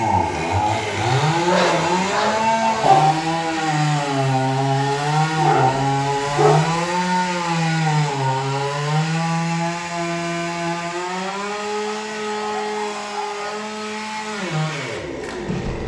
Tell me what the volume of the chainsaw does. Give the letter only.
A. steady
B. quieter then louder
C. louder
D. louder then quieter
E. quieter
E.